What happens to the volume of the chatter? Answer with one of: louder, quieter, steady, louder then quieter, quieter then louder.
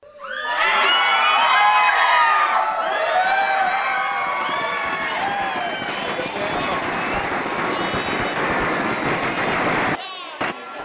quieter.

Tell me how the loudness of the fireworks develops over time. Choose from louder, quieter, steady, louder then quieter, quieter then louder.
louder.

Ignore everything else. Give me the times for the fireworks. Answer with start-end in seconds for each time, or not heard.
3.1-10.6.